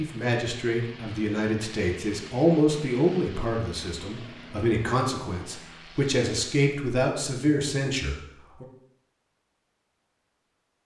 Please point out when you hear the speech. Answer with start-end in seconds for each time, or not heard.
0.0-8.7.